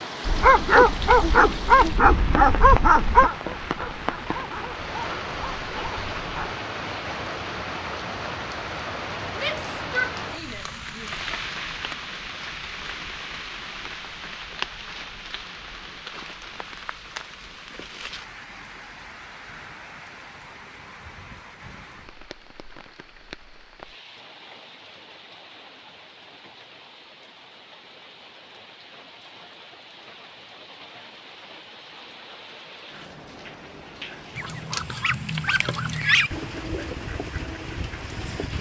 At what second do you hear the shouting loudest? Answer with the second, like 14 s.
10 s.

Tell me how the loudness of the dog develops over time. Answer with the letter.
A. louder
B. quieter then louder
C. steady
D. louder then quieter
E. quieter
E.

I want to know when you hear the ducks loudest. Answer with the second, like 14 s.
36 s.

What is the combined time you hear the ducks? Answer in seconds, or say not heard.
4 s.